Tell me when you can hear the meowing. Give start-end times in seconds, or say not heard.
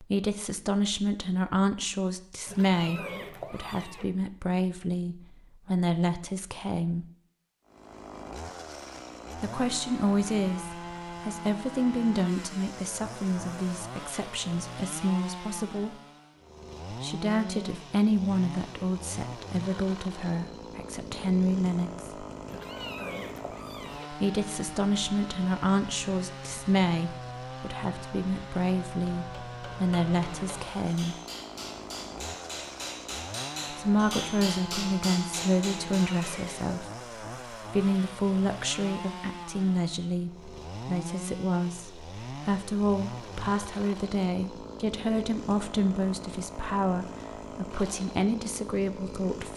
2.5-4.0, 22.4-24.1, 36.0-36.7.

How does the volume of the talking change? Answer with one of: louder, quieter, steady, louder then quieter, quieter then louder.
steady.